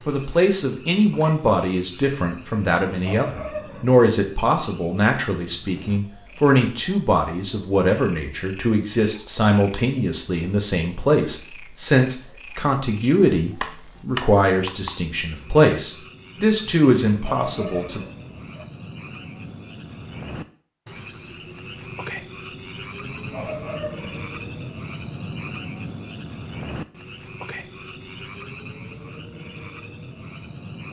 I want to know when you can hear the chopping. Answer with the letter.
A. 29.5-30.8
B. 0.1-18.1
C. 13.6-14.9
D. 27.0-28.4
C.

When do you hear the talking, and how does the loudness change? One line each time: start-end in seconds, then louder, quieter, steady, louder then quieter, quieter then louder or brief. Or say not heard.
0.1-18.1 steady.